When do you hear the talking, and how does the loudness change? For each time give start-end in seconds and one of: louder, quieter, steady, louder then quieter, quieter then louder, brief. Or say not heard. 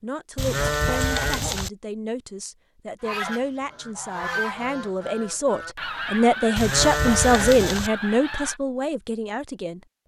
0.0-9.8 louder then quieter.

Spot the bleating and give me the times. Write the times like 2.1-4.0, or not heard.
0.3-1.7, 6.5-7.9.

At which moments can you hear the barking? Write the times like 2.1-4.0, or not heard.
not heard.